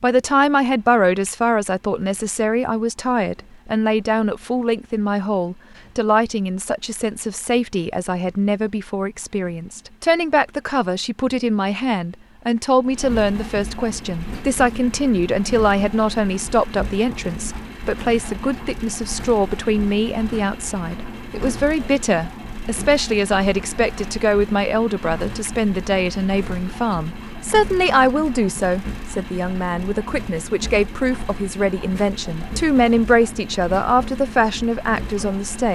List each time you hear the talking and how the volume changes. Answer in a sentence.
You can hear the talking from 0.0 to 35.6 s, at a steady volume.